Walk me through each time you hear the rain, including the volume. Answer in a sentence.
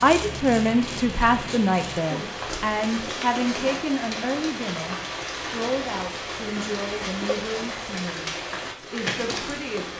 The rain can be heard from 0.0 to 9.9 s, at a steady volume.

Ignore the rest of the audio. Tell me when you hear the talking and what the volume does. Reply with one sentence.
The talking can be heard from 0.0 to 9.9 s, getting quieter.